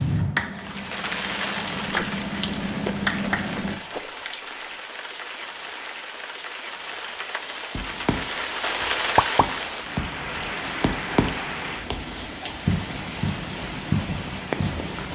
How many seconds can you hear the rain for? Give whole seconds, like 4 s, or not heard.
15 s.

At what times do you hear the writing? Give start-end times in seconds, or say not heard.
0.0-3.8, 7.7-15.1.